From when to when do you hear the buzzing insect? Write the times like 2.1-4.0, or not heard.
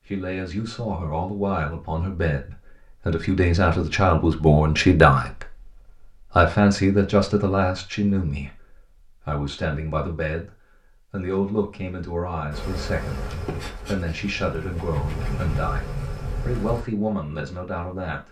12.5-16.9.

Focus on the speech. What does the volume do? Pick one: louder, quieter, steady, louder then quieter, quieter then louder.
louder then quieter.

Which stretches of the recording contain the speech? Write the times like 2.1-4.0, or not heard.
0.1-5.7, 6.3-10.5, 11.1-18.2.